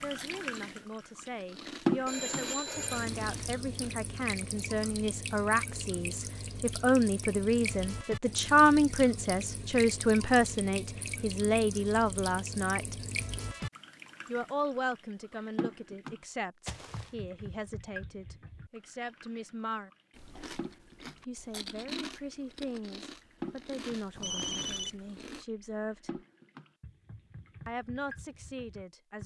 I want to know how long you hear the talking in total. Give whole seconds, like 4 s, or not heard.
25 s.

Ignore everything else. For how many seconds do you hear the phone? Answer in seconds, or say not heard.
2 s.